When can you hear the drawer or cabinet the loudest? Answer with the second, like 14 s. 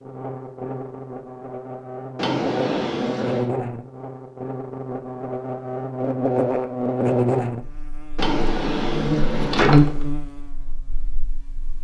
10 s.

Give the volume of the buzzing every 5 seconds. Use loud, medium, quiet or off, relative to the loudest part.
medium, loud, quiet.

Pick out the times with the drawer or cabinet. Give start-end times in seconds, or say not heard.
2.1-3.5, 8.2-10.1.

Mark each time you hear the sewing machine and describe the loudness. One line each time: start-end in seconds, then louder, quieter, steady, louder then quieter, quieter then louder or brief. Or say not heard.
not heard.